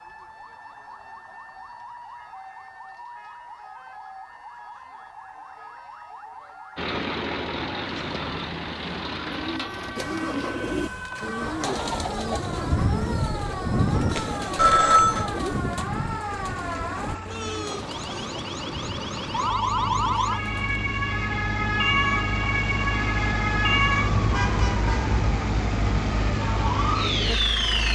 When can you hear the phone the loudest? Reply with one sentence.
The loudest moment of the phone is at 15 seconds.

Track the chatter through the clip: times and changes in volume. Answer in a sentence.
You can't hear the chatter here.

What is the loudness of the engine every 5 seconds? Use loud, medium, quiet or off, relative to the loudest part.
off, loud, medium, medium, loud, loud.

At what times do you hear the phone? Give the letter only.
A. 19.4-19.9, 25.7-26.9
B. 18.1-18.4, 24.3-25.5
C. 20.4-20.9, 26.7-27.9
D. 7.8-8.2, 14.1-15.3
D.